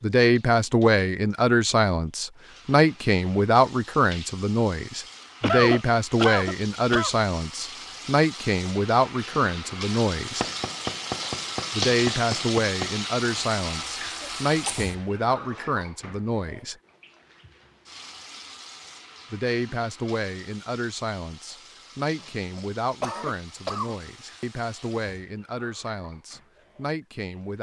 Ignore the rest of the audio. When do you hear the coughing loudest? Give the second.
6 s.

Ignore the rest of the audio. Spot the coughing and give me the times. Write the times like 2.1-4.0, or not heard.
5.4-7.2, 14.2-14.9, 22.6-23.9.